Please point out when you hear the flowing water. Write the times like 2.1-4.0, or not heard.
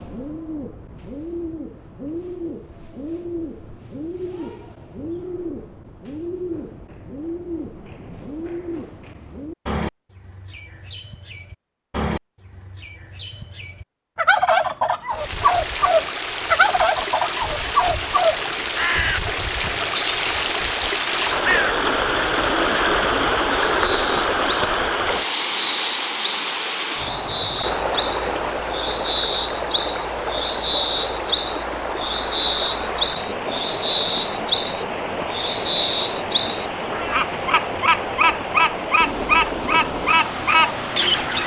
15.1-41.4.